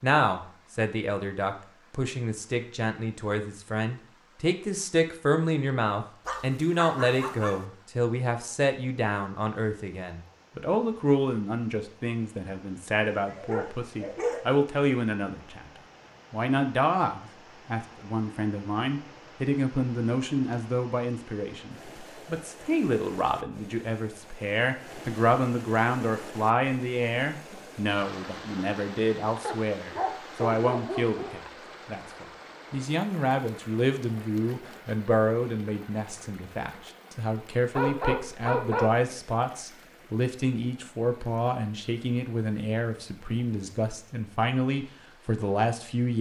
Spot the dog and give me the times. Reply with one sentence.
You can hear the dog from 6.2 to 7.7 s, from 13.1 to 14.6 s, from 29.4 to 31.3 s and from 37.7 to 39.0 s.